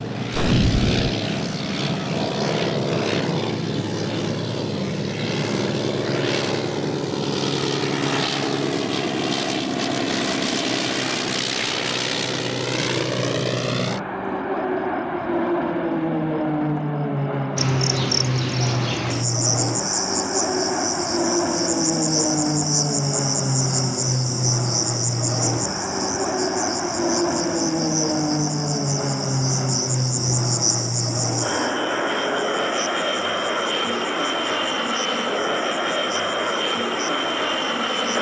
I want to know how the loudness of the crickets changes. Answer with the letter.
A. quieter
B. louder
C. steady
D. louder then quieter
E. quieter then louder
A.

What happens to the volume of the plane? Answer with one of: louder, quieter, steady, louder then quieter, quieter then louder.
steady.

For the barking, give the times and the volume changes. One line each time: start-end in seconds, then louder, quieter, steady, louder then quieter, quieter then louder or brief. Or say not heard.
not heard.